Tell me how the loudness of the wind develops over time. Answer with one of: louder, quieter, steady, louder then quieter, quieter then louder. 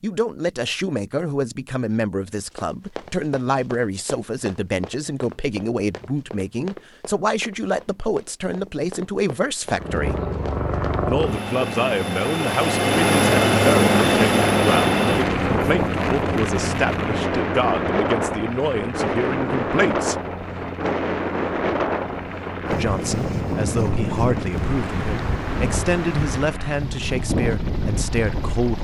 steady.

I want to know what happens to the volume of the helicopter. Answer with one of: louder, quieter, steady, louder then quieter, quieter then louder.
quieter.